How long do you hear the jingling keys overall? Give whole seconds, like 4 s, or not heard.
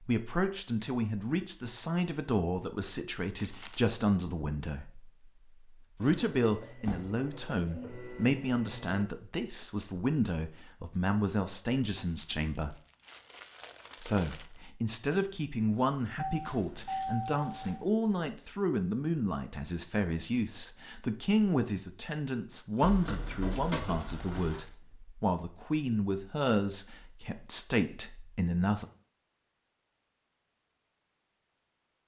5 s.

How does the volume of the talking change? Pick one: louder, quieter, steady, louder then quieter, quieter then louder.
steady.